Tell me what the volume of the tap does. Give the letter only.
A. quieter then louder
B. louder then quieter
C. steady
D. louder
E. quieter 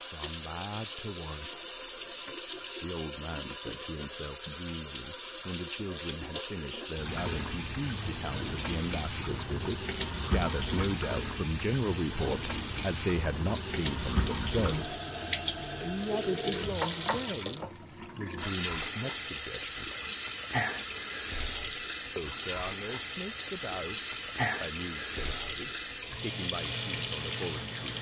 C.